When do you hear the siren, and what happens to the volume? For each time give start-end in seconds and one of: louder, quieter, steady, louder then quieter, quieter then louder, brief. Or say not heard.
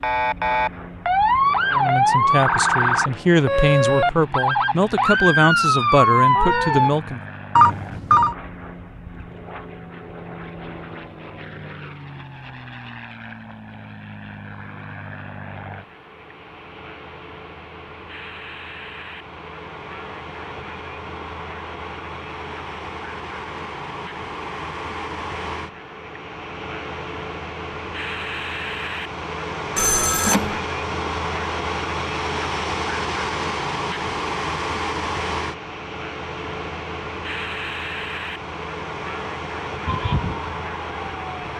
0.0-6.9 steady
39.9-41.5 brief.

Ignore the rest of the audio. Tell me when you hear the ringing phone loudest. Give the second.
8 s.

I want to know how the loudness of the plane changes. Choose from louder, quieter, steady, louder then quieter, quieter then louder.
louder.